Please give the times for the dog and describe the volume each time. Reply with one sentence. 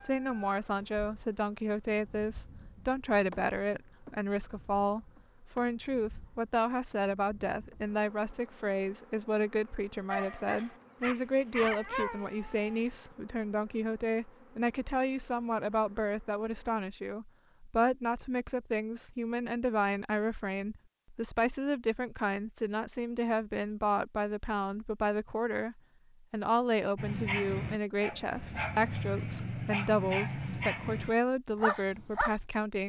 You can hear the dog briefly from 10.1 to 12.8 s; and from 26.9 to 32.4 s, at a steady volume.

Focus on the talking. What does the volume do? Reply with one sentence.
The volume of the talking stays about the same.